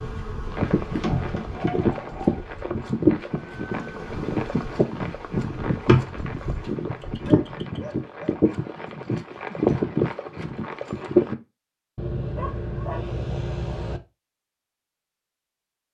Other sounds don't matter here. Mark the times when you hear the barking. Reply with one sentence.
You can hear the barking from 1.0 to 2.5 s, from 7.0 to 8.8 s and from 11.9 to 14.0 s.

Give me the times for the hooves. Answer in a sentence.
You can hear the hooves from 0.5 to 11.3 s.